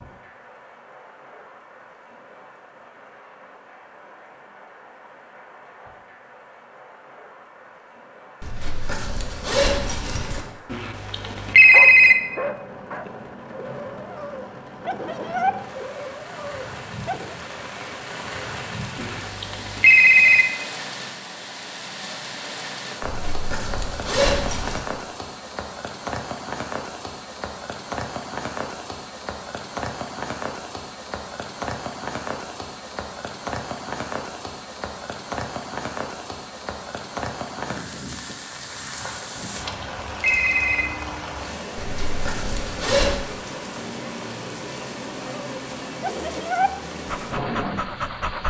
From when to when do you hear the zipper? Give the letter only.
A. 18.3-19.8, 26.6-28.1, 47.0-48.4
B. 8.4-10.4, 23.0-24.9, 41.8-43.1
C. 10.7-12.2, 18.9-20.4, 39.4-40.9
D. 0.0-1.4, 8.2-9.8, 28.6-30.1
B.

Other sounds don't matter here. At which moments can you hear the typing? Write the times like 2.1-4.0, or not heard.
not heard.